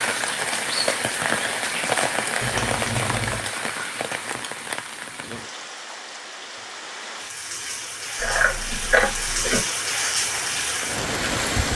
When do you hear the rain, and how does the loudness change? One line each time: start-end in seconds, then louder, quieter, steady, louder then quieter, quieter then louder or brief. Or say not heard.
0.0-11.7 quieter then louder.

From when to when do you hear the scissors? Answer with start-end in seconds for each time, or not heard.
2.4-3.4, 8.2-9.6.